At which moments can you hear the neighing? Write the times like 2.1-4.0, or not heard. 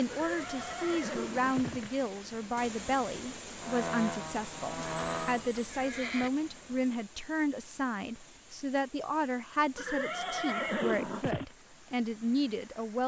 0.1-2.0, 4.9-6.3, 9.8-11.6.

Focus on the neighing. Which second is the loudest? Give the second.
11 s.